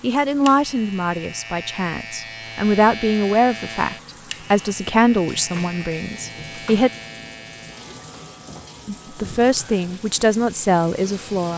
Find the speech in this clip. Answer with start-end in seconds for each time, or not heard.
0.0-6.9, 8.8-11.5.